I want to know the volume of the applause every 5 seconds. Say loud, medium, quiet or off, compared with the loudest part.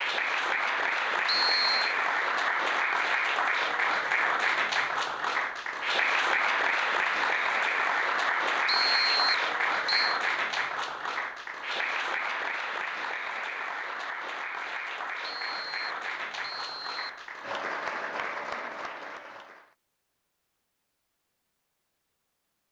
loud, loud, medium, medium, off.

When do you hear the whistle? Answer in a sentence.
You can hear the whistle from 1.2 to 1.9 s, from 8.7 to 10.2 s and from 15.2 to 17.2 s.